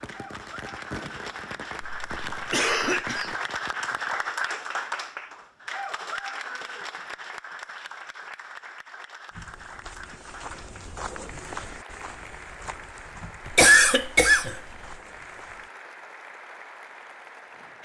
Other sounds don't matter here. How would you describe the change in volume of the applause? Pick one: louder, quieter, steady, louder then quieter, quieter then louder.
quieter.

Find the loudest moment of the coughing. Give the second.
14 s.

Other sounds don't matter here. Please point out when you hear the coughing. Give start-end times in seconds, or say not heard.
1.8-3.4, 13.4-14.9.